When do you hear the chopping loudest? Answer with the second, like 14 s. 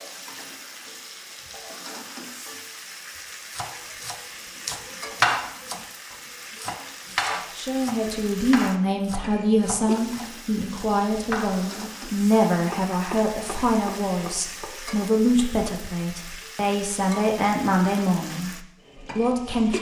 5 s.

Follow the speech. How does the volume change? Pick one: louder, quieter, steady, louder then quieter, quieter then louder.
steady.